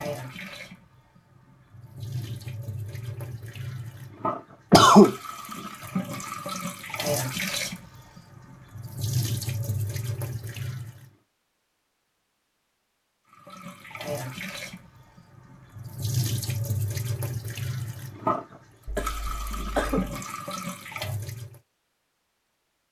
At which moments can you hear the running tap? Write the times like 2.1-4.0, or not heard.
0.0-11.1, 13.3-21.6.